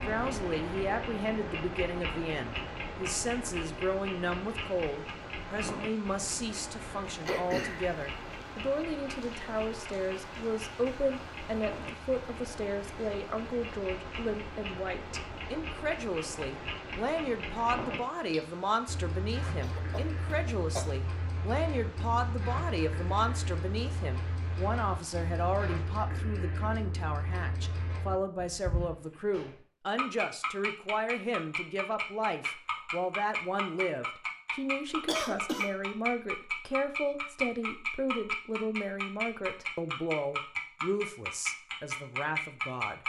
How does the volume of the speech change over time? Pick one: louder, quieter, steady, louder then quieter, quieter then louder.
steady.